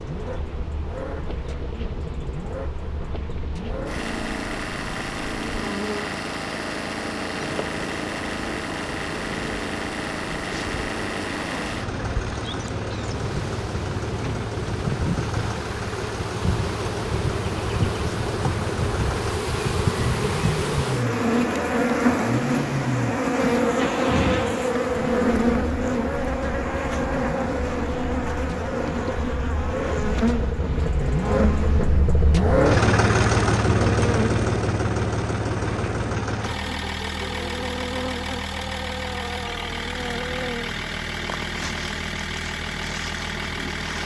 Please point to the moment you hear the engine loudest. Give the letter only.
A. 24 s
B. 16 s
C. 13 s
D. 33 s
D.